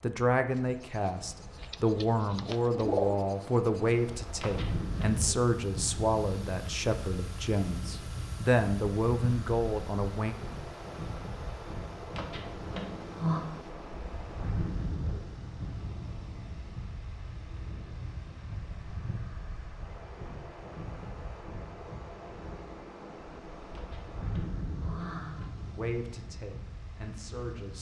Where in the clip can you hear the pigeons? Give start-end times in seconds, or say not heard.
1.6-3.2.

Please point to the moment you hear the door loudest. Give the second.
13 s.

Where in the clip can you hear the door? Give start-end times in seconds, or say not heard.
4.4-5.0, 12.2-13.4, 23.8-25.4.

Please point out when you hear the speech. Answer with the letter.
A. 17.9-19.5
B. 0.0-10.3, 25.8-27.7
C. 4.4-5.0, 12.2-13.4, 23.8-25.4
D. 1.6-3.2
B.